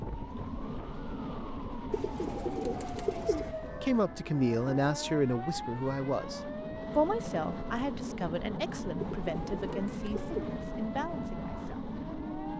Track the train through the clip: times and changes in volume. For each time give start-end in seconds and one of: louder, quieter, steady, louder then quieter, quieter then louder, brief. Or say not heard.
0.0-12.5 quieter then louder.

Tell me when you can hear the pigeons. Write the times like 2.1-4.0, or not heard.
1.9-3.5, 9.0-10.6.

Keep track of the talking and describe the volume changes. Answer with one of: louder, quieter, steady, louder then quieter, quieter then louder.
quieter.